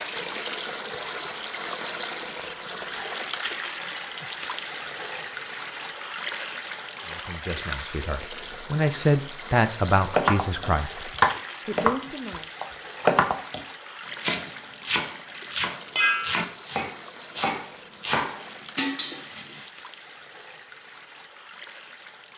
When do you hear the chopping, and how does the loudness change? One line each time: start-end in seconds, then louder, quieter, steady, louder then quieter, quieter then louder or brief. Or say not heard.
10.1-19.6 quieter.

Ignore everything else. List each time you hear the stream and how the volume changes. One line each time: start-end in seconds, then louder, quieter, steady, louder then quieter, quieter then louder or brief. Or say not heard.
0.0-22.3 quieter.